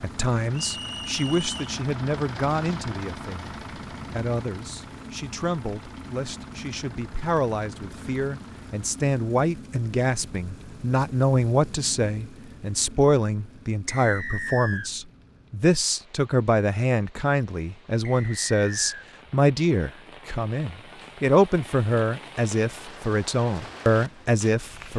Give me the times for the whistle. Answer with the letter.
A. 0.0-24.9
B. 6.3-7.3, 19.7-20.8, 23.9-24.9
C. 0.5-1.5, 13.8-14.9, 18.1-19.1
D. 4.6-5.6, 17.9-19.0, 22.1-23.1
C.